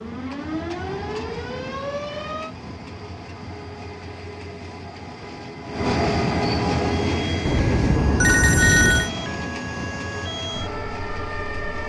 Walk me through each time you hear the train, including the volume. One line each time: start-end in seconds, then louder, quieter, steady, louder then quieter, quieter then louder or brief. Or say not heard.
0.0-11.8 louder then quieter.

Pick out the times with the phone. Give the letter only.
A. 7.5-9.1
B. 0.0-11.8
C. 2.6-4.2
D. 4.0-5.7
A.